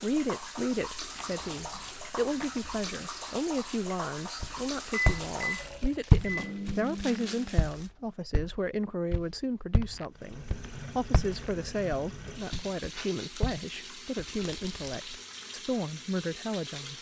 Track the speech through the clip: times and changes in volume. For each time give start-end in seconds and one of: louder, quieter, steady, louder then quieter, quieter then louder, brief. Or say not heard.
0.0-16.9 steady.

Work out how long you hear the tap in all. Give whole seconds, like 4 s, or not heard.
13 s.